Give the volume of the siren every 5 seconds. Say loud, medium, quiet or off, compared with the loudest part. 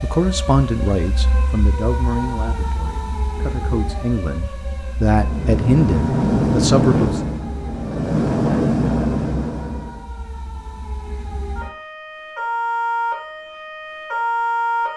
medium, quiet, loud.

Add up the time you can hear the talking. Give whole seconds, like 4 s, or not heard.
7 s.